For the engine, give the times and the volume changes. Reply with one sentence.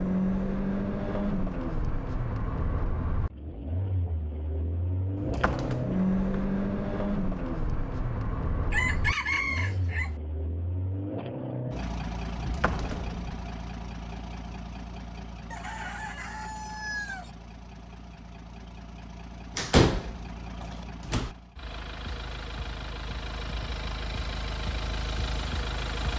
You can hear the engine from 0.0 to 26.1 s, getting quieter then louder.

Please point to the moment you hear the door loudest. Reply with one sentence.
The loudest moment of the door is at 20 seconds.